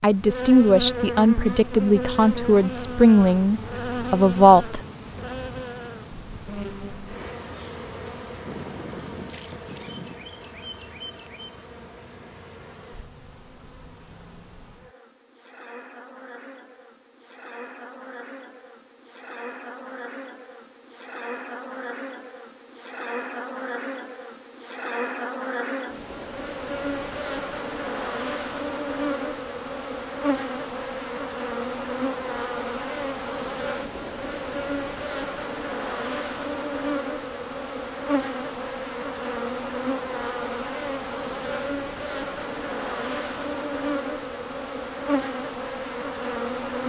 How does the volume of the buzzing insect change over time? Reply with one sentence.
The volume of the buzzing insect goes down, then up.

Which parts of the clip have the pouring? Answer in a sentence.
You can hear the pouring from 8.4 to 10.2 s.